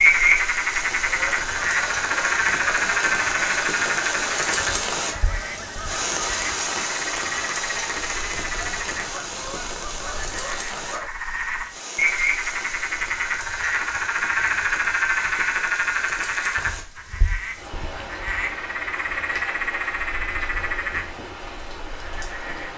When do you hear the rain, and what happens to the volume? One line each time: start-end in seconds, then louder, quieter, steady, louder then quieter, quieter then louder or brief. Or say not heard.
0.0-22.7 quieter.